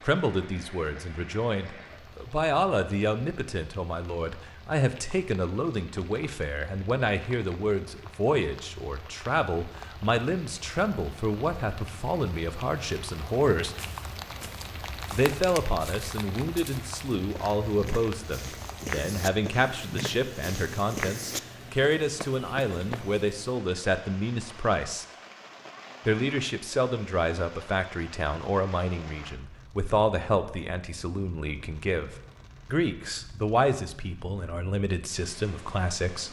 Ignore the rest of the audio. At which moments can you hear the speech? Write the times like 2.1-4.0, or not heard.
0.0-13.8, 15.1-25.1, 26.1-36.2.